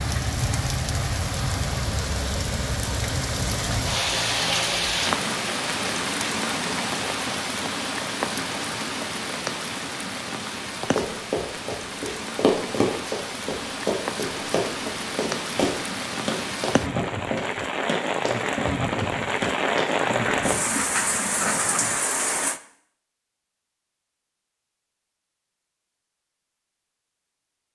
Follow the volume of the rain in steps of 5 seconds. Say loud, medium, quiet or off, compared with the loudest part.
loud, loud, medium, loud, loud, off.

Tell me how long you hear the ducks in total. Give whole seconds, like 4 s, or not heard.
2 s.